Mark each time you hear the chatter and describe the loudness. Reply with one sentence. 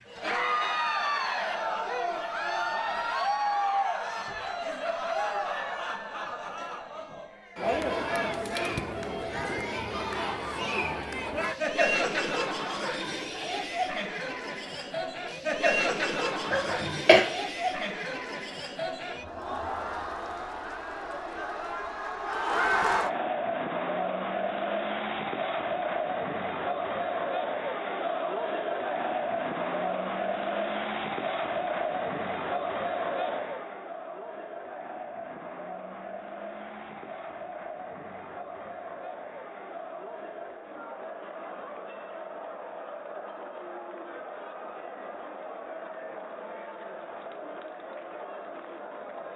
The chatter can be heard from 0.0 to 49.3 s, getting quieter.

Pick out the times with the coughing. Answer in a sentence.
The coughing can be heard from 16.5 to 17.2 s.